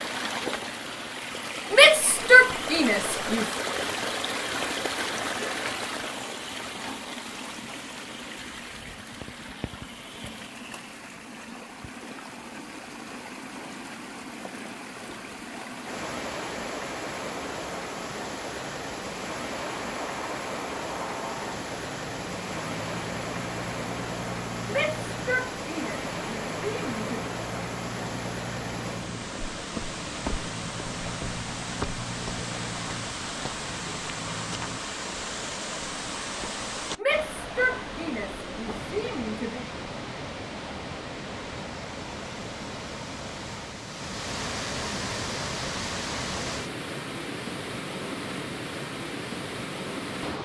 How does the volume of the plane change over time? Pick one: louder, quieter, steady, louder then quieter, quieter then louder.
steady.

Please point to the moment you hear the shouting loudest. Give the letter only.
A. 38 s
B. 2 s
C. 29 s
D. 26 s
B.